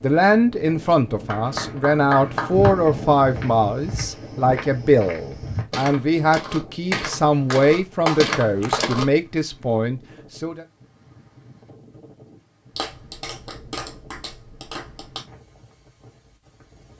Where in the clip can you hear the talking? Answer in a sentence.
The talking can be heard from 0.0 to 10.7 s.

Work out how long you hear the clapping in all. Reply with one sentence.
The clapping can be heard for 6 seconds in total.